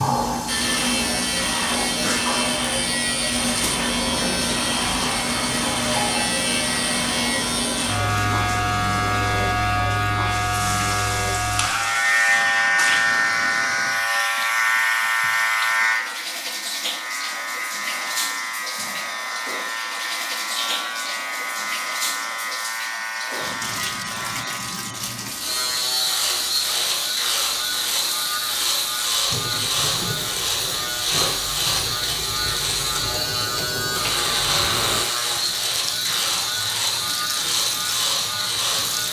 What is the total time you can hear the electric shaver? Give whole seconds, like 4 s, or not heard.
39 s.